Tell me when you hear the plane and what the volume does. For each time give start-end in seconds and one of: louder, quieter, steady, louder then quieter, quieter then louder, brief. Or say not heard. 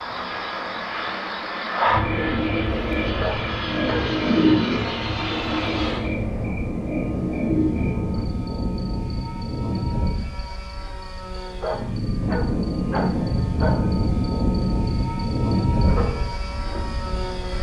0.0-17.5 louder.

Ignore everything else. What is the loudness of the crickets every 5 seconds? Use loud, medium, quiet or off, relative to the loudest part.
loud, medium, quiet, medium.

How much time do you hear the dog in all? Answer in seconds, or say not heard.
3 s.